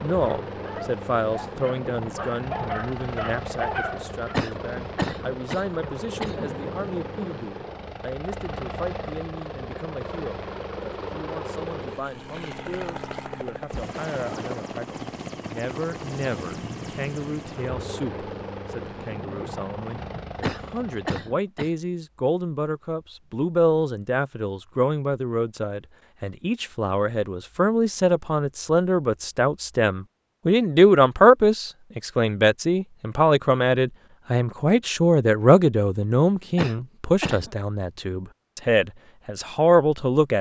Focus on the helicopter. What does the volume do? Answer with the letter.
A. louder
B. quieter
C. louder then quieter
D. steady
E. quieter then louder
D.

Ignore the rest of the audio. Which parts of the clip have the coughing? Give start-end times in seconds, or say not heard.
4.3-6.5, 20.4-21.7, 36.5-37.5.